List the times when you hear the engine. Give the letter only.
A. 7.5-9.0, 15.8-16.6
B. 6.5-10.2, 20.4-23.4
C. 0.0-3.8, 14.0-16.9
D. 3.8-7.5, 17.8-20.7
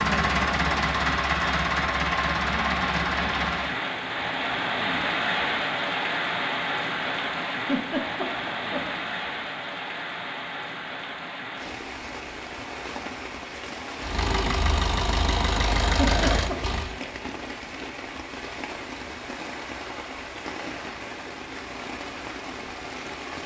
C.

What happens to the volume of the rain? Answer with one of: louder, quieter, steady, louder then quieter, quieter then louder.
quieter.